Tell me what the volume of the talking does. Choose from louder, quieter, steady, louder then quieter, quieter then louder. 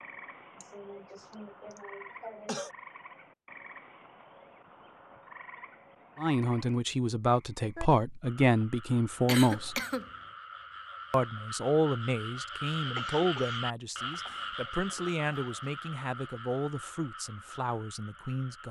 quieter.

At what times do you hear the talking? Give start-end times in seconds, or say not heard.
6.2-9.8, 11.1-18.6.